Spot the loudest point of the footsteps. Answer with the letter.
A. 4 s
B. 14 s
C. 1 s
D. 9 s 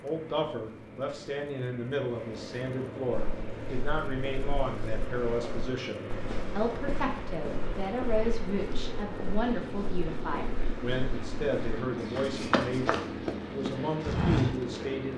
B.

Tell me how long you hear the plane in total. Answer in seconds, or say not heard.
15 s.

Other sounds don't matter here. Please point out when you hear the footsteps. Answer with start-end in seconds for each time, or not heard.
3.1-14.8.